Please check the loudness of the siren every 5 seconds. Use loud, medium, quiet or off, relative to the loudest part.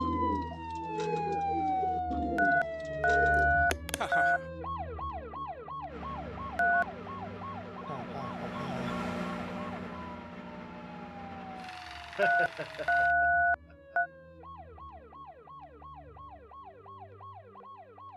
loud, medium, quiet, quiet.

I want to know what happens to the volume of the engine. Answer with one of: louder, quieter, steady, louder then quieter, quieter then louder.
louder then quieter.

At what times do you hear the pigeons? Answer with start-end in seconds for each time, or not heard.
0.0-3.6.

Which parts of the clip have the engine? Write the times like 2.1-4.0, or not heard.
5.8-13.2.